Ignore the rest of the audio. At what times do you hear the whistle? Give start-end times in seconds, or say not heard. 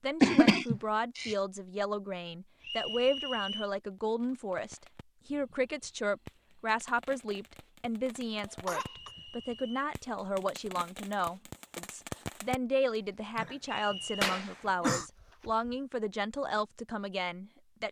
2.6-3.7, 8.8-9.8, 13.7-14.2.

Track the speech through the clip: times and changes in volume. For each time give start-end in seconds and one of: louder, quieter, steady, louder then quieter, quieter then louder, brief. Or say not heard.
0.0-17.8 steady.